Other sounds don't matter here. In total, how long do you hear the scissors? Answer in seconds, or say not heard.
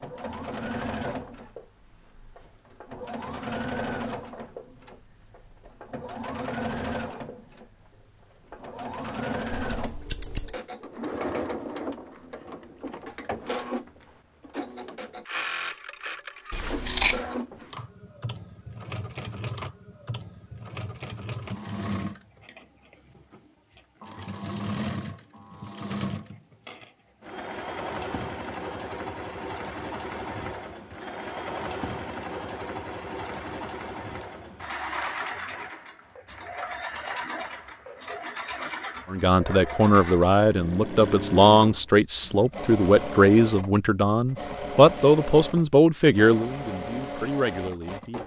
3 s.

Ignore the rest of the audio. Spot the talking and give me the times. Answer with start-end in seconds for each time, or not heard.
39.1-48.2.